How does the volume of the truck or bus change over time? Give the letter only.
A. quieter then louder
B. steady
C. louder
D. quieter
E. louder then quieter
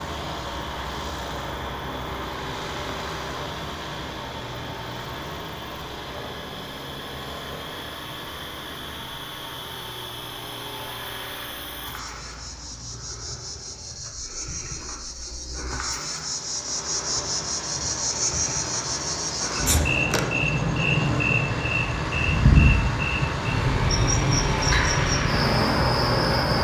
A.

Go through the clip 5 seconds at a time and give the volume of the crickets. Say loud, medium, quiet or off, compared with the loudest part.
quiet, quiet, quiet, medium, loud, loud.